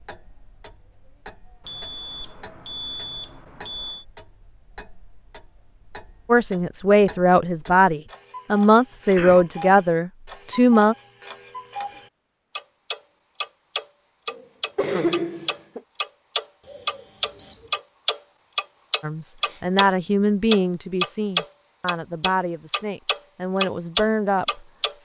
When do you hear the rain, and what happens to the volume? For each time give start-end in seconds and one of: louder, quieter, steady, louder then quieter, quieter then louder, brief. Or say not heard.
not heard.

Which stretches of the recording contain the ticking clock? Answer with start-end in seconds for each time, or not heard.
0.0-19.9, 20.5-24.9.